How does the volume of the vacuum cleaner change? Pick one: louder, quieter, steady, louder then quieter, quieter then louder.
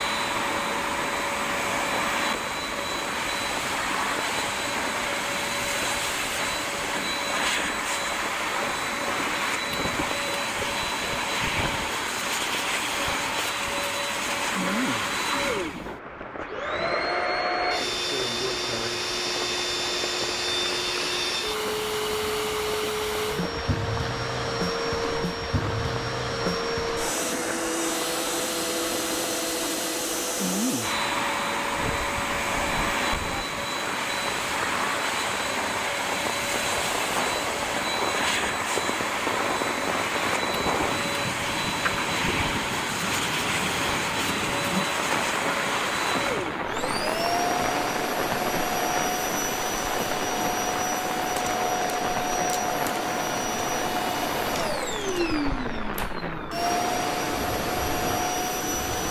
steady.